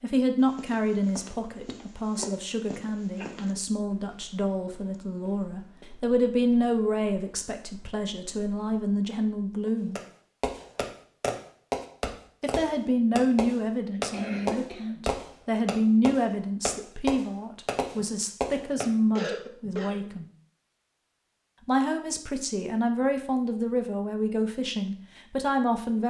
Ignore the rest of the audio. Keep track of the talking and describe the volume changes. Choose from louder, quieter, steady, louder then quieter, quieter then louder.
steady.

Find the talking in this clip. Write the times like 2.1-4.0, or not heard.
0.0-10.0, 12.4-20.2, 21.6-26.0.